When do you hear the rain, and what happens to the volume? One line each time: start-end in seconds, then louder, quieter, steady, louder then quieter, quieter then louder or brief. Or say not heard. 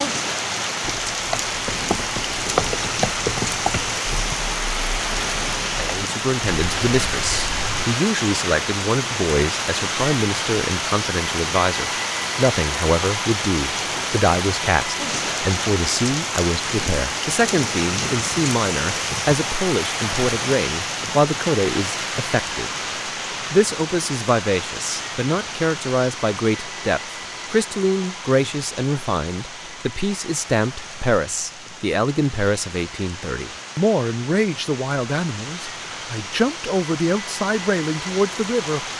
0.0-38.9 quieter.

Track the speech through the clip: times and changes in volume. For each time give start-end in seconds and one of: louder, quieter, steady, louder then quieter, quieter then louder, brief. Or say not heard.
5.8-22.7 steady
23.5-38.9 steady.